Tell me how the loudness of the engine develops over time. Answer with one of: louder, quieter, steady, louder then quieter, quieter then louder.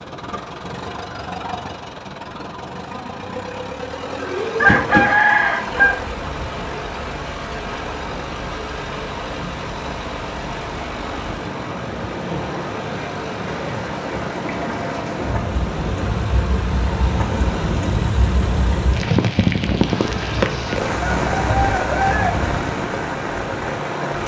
steady.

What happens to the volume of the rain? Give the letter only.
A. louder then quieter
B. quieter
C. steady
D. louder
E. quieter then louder
D.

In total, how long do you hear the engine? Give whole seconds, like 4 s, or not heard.
24 s.